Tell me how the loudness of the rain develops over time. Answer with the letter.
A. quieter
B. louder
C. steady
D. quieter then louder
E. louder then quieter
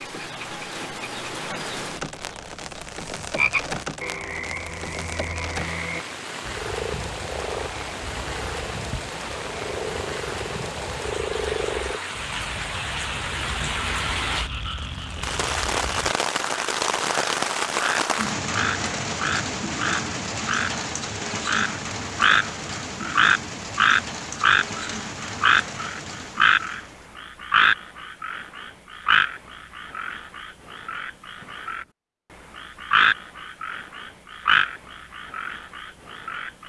E.